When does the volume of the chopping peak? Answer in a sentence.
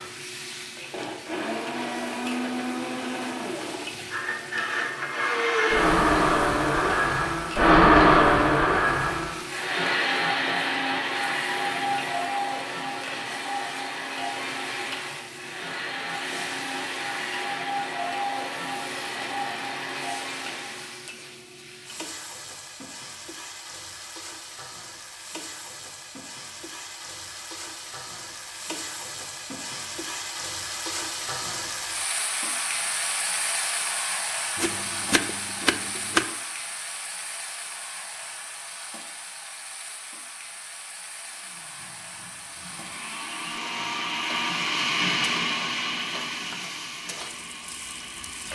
The loudest moment of the chopping is at 36 seconds.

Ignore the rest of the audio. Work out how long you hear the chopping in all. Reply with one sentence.
The chopping can be heard for 2 seconds in total.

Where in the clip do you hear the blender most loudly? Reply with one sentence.
The loudest moment of the blender is at 8 seconds.